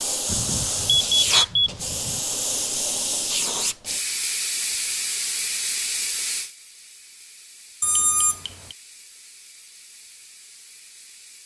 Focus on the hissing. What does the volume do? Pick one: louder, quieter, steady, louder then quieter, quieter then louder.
quieter.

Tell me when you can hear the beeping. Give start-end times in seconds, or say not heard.
0.2-2.2, 7.8-8.8.